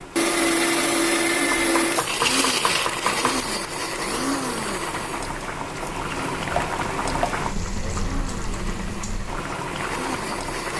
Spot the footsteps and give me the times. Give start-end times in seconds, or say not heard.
not heard.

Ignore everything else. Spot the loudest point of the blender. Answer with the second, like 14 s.
1 s.